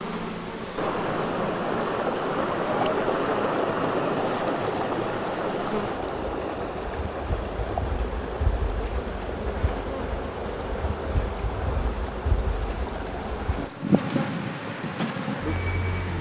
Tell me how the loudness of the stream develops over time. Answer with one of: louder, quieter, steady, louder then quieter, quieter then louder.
quieter.